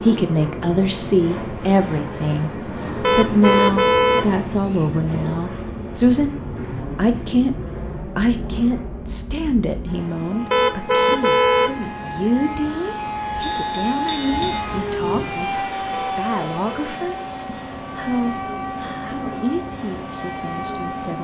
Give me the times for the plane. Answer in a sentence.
The plane can be heard from 0.0 to 21.1 s.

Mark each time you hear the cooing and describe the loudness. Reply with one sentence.
The cooing can't be heard in this clip.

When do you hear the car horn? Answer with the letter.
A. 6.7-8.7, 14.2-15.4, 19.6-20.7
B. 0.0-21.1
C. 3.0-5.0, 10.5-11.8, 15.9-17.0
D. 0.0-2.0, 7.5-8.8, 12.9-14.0
C.